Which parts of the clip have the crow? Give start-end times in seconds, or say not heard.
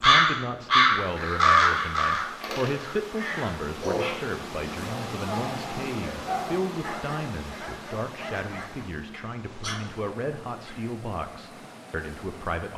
0.0-3.5.